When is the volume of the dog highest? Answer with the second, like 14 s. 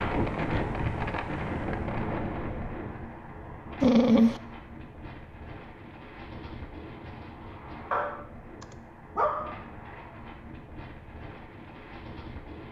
4 s.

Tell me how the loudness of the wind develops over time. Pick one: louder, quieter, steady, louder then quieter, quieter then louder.
quieter.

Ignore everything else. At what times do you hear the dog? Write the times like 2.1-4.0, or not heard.
3.8-4.4, 7.9-9.6.